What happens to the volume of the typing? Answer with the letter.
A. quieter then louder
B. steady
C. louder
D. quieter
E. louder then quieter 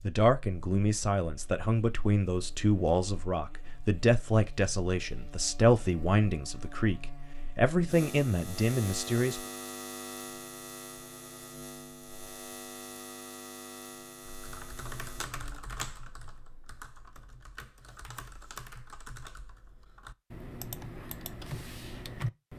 A.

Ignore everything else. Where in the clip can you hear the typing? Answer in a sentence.
You can hear the typing from 14.3 to 22.5 s.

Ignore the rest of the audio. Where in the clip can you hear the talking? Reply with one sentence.
The talking can be heard from 0.0 to 9.4 s.